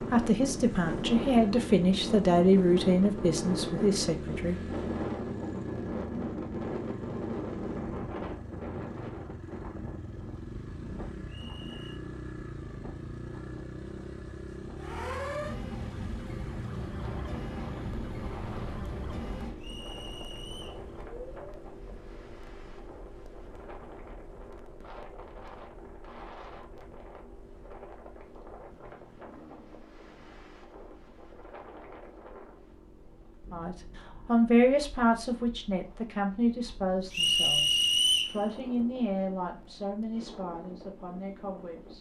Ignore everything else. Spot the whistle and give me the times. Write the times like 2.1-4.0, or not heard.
11.2-12.0, 19.6-20.9, 37.1-38.4.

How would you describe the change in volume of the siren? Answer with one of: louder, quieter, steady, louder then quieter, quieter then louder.
quieter.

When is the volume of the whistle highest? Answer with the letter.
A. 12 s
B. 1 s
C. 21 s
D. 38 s
D.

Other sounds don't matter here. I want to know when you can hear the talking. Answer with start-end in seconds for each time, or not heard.
0.0-4.6, 33.5-41.9.